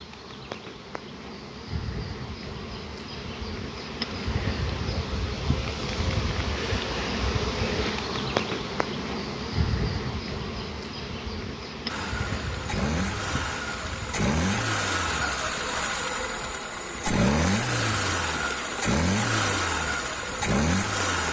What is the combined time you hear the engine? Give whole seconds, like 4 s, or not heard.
9 s.